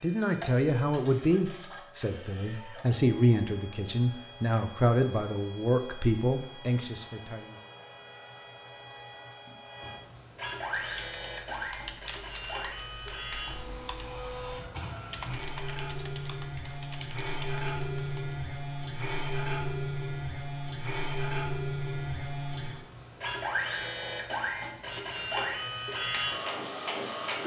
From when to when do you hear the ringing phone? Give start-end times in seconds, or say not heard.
not heard.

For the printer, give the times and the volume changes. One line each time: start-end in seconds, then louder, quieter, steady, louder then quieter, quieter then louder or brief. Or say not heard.
0.0-27.4 louder.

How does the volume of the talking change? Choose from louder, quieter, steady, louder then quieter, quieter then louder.
steady.